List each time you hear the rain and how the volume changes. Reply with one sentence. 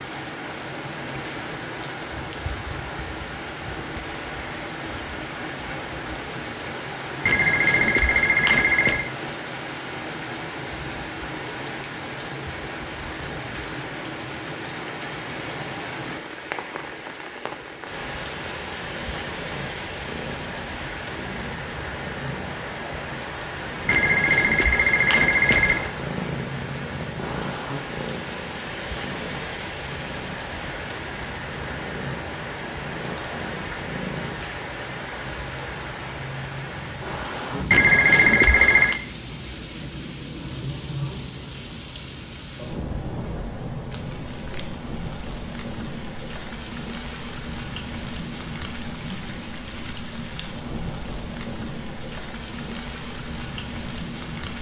You can hear the rain from 0.0 to 54.5 s, at a steady volume.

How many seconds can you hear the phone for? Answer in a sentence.
The phone can be heard for 5 seconds in total.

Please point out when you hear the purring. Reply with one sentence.
You can hear the purring from 18.9 to 34.4 s.